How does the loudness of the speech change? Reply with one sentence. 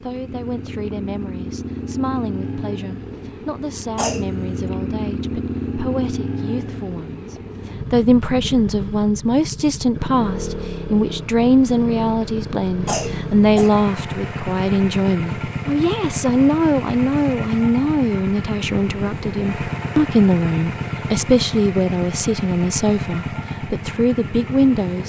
The loudness of the speech goes up.